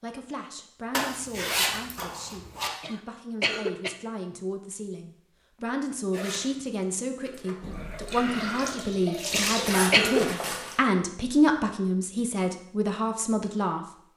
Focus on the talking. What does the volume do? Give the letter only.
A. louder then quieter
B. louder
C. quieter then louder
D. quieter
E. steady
B.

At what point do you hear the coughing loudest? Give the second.
10 s.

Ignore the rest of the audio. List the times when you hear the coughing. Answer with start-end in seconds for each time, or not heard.
2.8-4.0, 9.3-10.2.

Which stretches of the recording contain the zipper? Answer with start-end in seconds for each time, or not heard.
0.9-2.7, 6.1-7.5, 9.4-10.8.